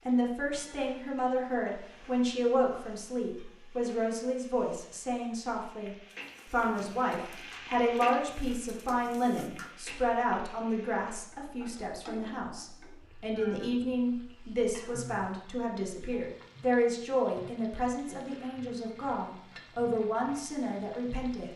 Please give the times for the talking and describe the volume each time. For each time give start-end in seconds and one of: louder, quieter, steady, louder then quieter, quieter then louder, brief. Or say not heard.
0.1-21.5 steady.